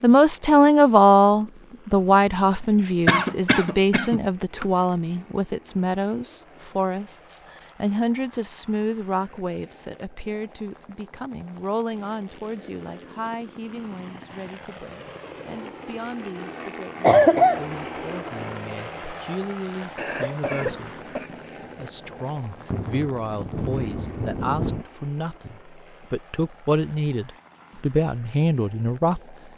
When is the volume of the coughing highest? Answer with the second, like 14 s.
17 s.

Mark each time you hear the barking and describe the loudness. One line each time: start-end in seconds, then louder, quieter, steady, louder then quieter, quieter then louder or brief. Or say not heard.
not heard.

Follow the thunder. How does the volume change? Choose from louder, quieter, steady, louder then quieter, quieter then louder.
louder.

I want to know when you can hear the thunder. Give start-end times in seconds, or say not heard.
20.6-24.9.